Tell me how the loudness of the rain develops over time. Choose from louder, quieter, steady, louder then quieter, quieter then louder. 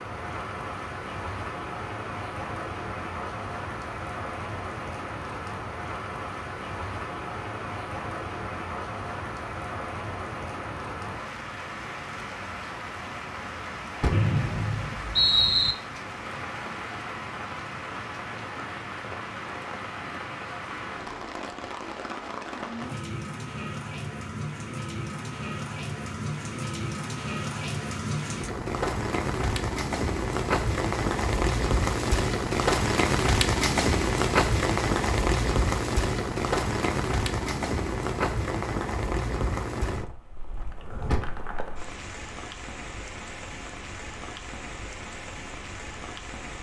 louder then quieter.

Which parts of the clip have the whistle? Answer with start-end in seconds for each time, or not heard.
14.1-15.8.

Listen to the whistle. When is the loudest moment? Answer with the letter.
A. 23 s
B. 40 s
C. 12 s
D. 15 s
D.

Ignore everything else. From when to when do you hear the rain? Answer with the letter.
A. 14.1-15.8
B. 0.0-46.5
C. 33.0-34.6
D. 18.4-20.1
B.